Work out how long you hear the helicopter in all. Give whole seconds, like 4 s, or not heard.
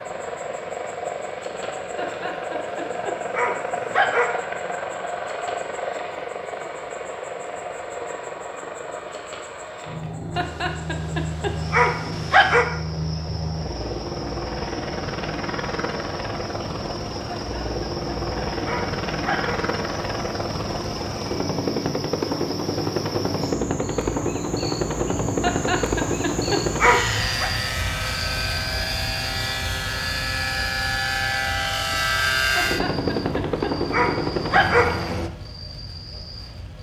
35 s.